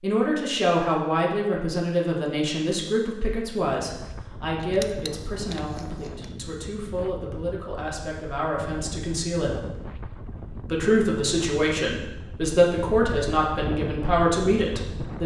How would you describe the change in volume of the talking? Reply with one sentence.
The volume of the talking goes down, then up.